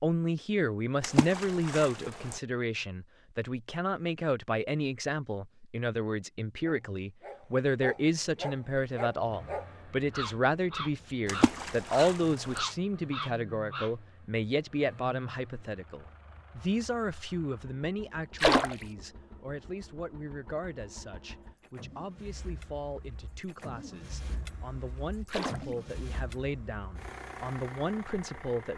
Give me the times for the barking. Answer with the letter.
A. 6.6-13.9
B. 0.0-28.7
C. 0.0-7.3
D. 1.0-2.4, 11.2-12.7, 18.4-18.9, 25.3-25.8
A.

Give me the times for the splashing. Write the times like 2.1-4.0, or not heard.
1.0-2.4, 11.2-12.7, 18.4-18.9, 25.3-25.8.